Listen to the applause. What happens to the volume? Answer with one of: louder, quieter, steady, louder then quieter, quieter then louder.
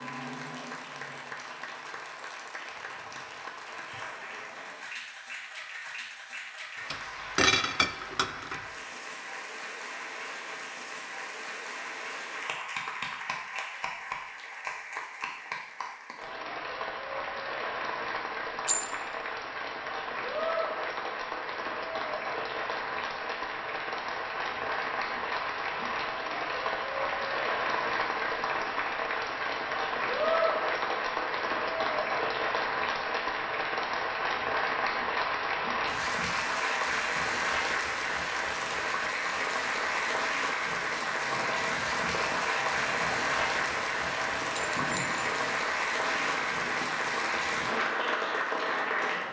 louder.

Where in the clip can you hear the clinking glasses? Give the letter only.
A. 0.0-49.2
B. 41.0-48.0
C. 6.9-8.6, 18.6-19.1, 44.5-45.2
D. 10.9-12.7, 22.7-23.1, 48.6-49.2
C.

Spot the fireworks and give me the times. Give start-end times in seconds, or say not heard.
41.0-48.0.